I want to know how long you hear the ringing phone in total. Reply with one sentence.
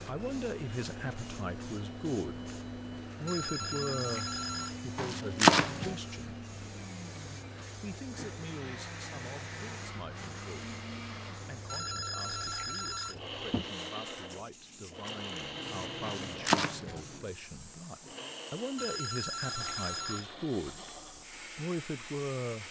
You can hear the ringing phone for 5 seconds altogether.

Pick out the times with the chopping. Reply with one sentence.
You can hear the chopping from 5.0 to 6.0 s and from 16.0 to 17.0 s.